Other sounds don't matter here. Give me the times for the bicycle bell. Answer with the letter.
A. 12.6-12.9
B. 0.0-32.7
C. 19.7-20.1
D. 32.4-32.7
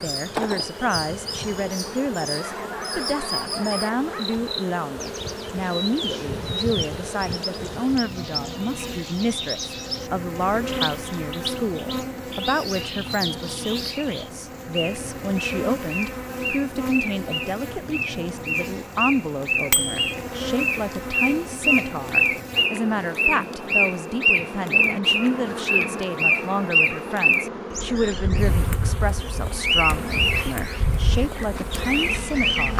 C.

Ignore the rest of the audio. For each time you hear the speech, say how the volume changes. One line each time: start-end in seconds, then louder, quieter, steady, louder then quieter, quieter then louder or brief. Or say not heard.
0.0-32.7 steady.